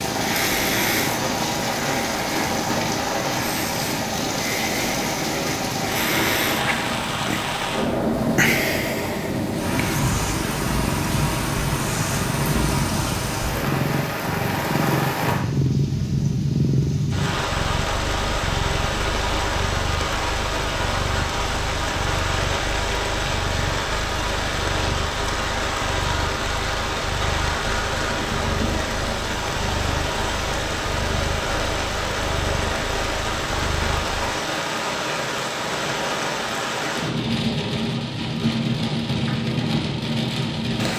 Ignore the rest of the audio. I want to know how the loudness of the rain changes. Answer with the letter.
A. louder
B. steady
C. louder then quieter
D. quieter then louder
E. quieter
B.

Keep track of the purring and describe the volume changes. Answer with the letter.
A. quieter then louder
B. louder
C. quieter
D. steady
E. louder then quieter
C.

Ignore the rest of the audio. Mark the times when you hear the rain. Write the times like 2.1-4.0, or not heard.
0.0-40.9.